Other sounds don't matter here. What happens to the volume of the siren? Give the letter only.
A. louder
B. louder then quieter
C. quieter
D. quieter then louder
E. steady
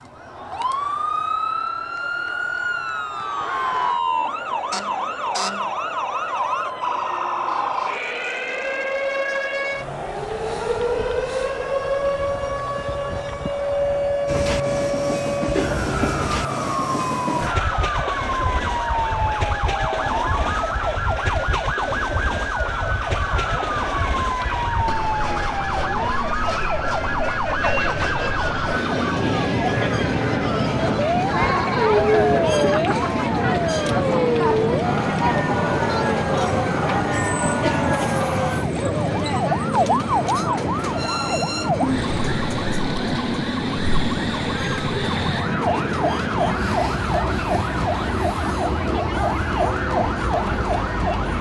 E.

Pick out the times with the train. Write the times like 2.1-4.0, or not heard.
14.2-51.3.